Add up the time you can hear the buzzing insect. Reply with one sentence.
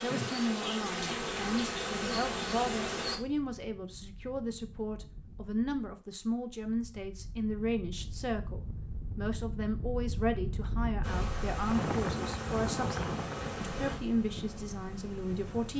You can hear the buzzing insect for 8 seconds altogether.